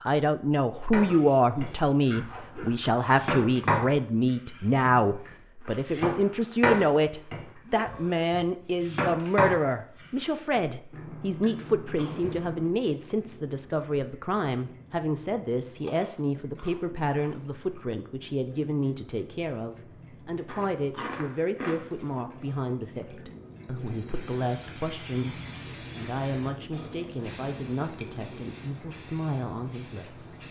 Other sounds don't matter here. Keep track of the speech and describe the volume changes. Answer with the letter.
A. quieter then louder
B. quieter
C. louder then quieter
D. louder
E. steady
B.